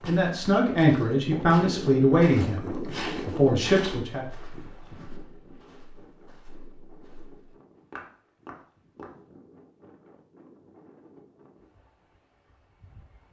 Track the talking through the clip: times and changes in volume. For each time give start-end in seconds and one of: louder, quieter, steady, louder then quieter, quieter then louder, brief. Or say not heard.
0.1-4.2 quieter then louder.